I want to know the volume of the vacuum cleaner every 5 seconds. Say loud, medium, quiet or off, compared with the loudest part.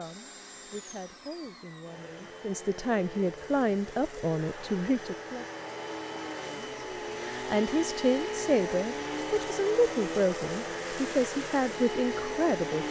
medium, loud, loud.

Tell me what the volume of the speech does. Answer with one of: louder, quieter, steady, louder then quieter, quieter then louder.
louder.